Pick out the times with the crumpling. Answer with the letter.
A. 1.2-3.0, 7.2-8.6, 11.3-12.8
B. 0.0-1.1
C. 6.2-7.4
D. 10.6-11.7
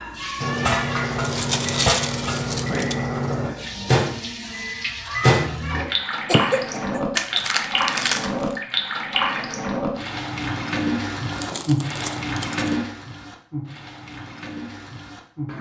A.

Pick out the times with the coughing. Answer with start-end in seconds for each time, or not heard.
6.2-7.4.